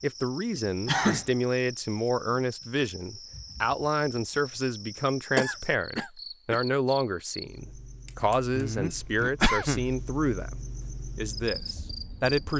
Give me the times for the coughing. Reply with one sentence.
You can hear the coughing from 0.8 to 1.2 s, from 5.3 to 6.6 s and from 8.5 to 10.1 s.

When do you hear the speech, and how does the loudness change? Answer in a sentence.
The speech can be heard from 0.0 to 12.5 s, at a steady volume.